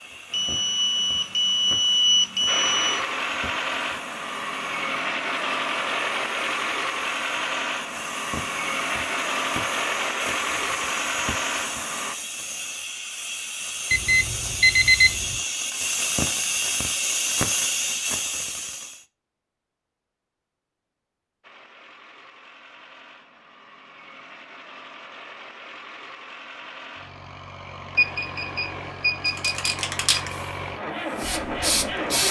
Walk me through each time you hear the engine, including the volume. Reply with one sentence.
The engine can be heard from 2.5 to 12.2 s, at a steady volume; and from 21.4 to 32.2 s, getting louder.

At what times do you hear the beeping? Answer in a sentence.
The beeping can be heard from 0.3 to 3.0 s, from 13.9 to 15.3 s and from 27.9 to 30.2 s.